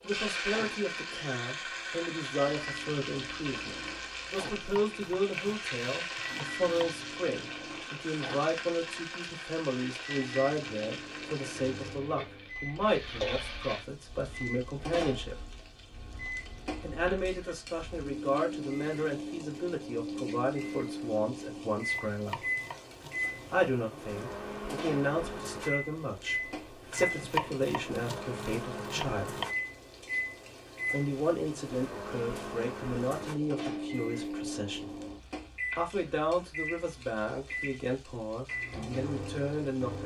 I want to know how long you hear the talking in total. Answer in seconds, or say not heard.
35 s.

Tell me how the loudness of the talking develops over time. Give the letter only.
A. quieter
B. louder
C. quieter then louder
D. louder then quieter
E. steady
E.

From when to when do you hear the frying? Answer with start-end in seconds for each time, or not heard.
0.0-40.0.